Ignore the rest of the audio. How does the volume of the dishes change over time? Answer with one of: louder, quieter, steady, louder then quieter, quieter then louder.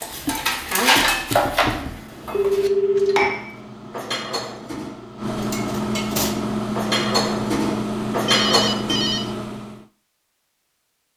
quieter then louder.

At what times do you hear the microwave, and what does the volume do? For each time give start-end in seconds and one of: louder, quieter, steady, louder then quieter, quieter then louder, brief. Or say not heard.
2.0-9.8 louder.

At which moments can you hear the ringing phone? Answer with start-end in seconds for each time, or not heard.
2.3-3.4, 8.2-9.2.